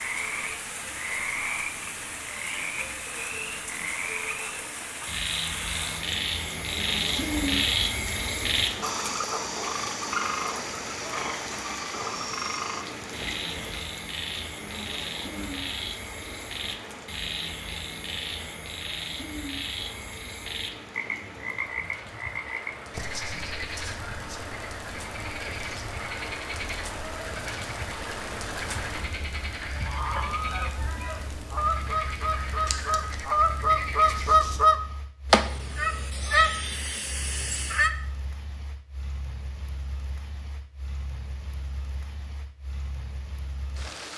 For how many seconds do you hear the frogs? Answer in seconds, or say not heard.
35 s.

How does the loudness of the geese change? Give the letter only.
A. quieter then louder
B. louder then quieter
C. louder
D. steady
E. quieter
B.